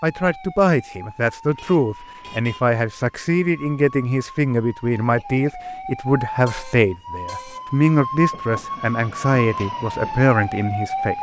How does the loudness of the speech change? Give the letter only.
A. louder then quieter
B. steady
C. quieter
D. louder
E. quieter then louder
B.